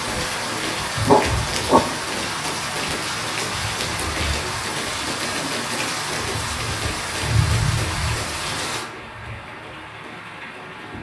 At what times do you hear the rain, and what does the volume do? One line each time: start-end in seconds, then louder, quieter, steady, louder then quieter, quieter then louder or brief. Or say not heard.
0.0-10.9 quieter.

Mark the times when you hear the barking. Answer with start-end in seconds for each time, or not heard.
1.1-1.8.